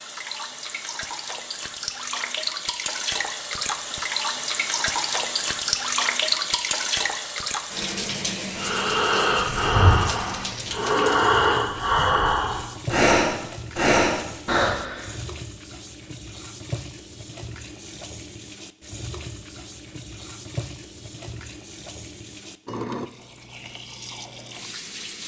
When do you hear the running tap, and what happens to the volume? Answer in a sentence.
You can hear the running tap from 0.0 to 25.2 s, getting quieter.